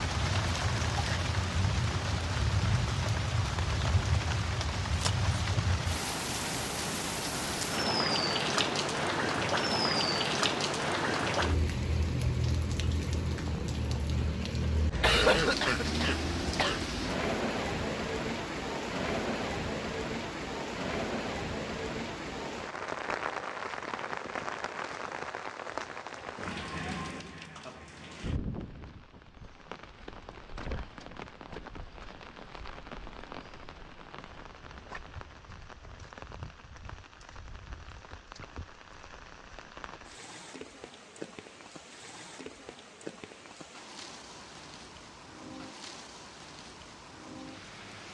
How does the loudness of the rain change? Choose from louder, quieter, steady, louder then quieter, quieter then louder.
quieter.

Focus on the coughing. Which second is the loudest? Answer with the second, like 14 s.
15 s.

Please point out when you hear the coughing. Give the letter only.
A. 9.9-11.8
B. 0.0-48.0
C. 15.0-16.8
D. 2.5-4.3
C.